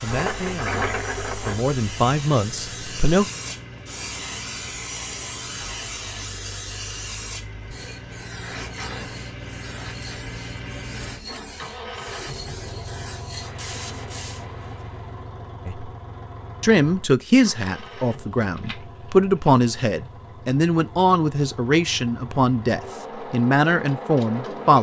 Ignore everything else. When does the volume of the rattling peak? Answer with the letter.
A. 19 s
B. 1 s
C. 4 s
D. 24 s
B.